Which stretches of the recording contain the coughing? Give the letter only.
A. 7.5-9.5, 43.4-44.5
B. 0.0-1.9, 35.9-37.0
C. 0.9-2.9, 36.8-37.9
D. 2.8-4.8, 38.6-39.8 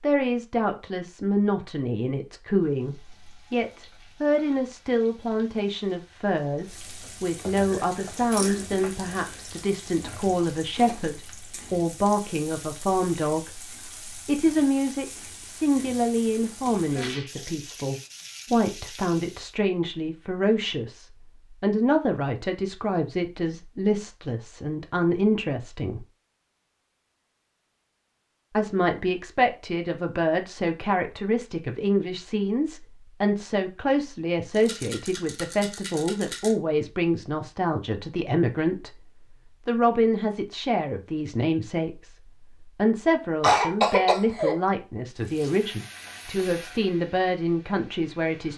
A.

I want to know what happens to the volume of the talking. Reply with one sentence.
The loudness of the talking stays about the same.